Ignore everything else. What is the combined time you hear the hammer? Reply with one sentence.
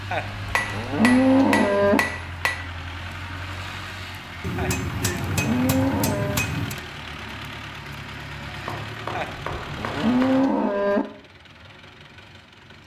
You can hear the hammer for 6 seconds altogether.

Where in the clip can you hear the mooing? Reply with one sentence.
The mooing can be heard from 0.1 to 2.0 s, from 4.5 to 6.5 s and from 9.2 to 11.1 s.